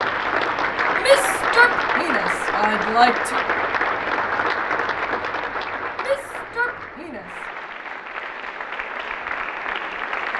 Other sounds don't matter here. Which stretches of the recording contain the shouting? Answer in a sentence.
The shouting can be heard from 0.9 to 3.5 s and from 6.0 to 7.3 s.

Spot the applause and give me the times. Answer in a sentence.
You can hear the applause from 0.0 to 10.3 s.